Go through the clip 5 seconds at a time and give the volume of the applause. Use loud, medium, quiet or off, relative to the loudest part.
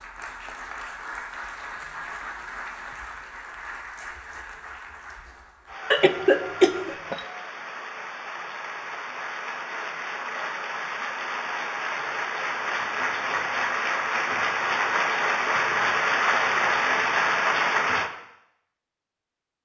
quiet, quiet, medium, loud.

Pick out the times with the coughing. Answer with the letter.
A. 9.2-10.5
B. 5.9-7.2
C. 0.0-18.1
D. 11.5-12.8
B.